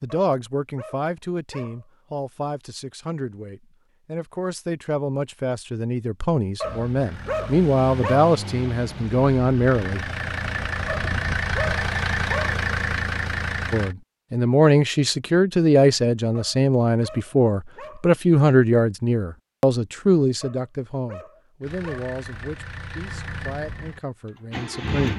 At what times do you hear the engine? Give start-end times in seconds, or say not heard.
6.6-13.9, 21.6-25.1.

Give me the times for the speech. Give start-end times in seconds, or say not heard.
0.0-10.0, 13.7-25.1.